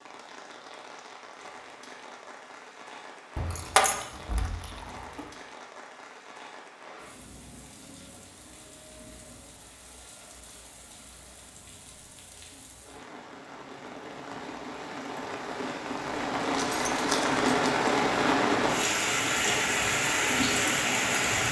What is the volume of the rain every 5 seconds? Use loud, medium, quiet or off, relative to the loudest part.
quiet, quiet, quiet, loud, loud.